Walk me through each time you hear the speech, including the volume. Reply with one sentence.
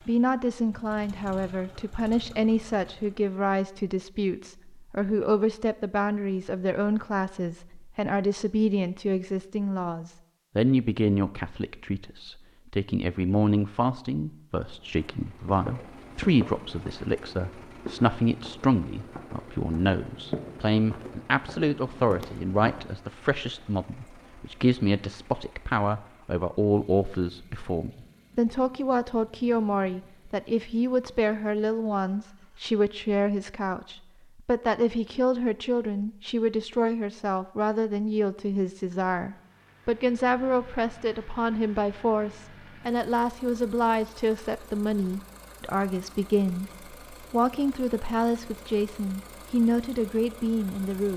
The speech can be heard from 0.1 to 51.1 s, at a steady volume.